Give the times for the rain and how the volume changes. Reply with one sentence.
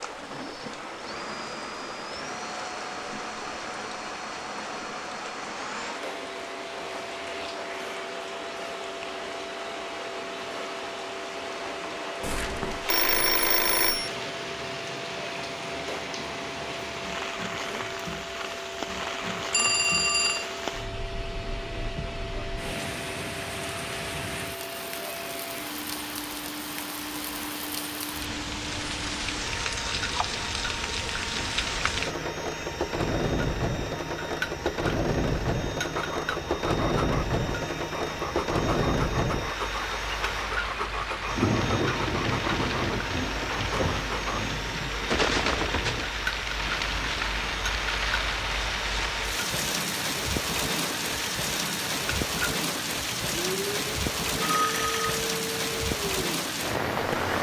The rain can be heard from 0.0 to 57.3 s, getting louder.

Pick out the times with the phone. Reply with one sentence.
You can hear the phone from 12.2 to 14.1 s, from 19.5 to 20.4 s and from 54.4 to 55.0 s.